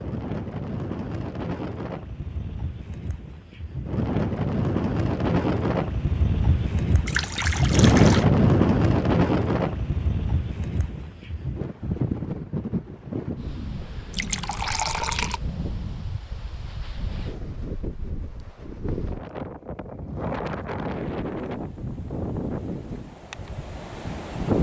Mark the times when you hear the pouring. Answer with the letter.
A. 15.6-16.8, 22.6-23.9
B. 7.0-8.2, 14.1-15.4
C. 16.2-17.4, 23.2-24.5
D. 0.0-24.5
B.